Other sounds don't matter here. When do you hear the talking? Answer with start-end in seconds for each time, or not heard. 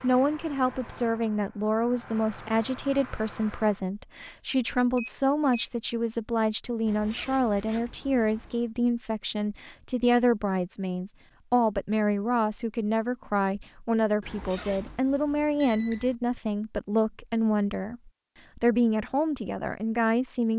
0.0-20.5.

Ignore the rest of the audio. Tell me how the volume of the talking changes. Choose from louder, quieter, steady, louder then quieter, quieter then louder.
steady.